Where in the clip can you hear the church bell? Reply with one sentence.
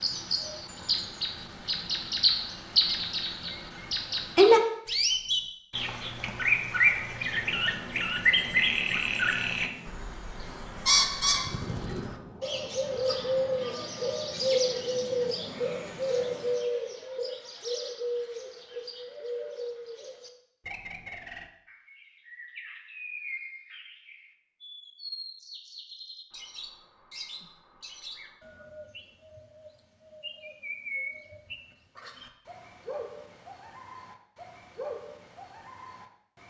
You can't hear the church bell here.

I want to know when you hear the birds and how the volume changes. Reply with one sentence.
You can hear the birds from 0.0 to 36.4 s, getting quieter.